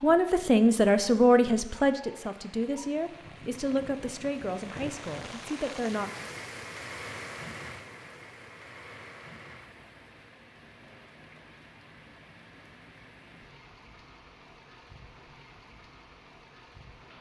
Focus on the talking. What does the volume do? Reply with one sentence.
The loudness of the talking goes down.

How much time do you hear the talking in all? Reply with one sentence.
The talking can be heard for 6 seconds in total.